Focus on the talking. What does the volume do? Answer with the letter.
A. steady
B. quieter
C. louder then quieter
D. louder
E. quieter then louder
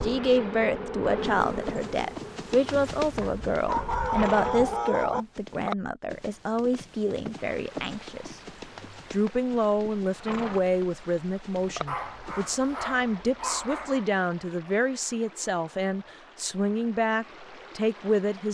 A.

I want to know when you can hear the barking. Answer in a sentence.
The barking can be heard from 3.2 to 5.2 s and from 11.8 to 14.1 s.